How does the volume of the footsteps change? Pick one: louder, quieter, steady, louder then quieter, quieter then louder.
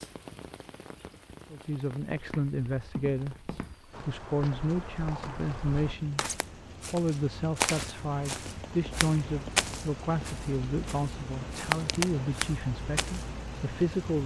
louder.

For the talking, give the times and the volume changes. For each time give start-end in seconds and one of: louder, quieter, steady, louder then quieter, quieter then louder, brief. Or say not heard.
1.5-14.2 steady.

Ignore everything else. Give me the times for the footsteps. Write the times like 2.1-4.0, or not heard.
2.1-13.2.